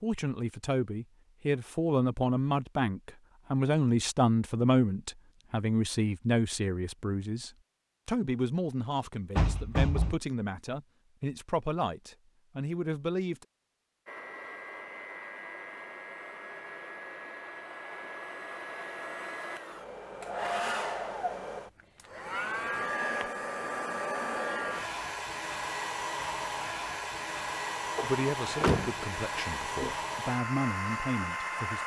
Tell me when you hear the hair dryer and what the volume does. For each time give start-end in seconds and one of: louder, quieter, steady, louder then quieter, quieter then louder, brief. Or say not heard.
14.1-31.8 louder.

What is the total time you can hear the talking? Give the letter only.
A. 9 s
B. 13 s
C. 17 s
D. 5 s
C.